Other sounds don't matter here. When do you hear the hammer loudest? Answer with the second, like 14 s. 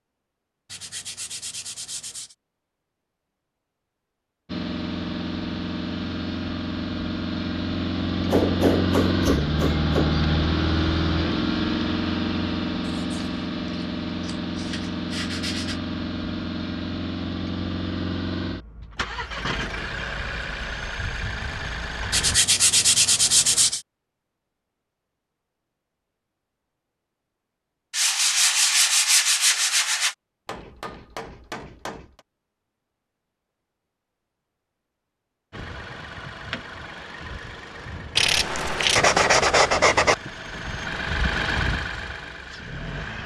9 s.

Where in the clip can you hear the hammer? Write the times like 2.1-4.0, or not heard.
8.2-10.2, 30.4-32.2.